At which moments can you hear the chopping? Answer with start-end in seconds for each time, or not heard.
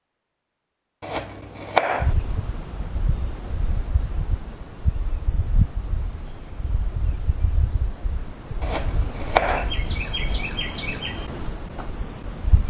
1.0-2.1, 8.6-9.8.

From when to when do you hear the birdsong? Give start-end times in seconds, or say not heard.
2.0-12.6.